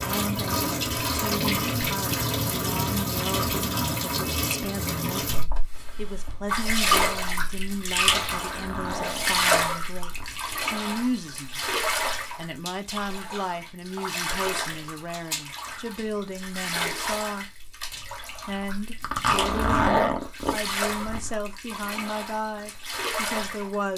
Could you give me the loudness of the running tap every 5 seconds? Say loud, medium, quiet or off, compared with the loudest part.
loud, loud, medium, medium, medium.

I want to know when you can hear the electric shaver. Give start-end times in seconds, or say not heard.
not heard.